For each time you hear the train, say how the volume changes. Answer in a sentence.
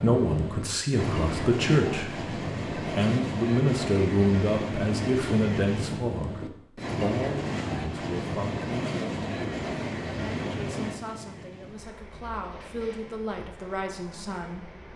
You can hear the train from 0.0 to 14.9 s, getting quieter.